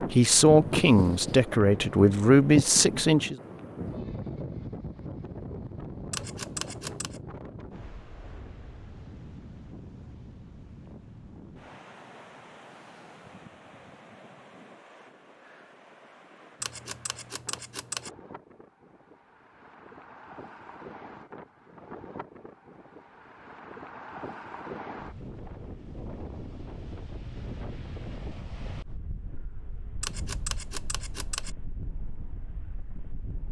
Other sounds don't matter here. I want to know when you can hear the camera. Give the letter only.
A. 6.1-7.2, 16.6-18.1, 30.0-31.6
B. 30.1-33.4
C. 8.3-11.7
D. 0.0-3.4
A.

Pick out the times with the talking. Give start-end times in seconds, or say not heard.
0.0-3.4.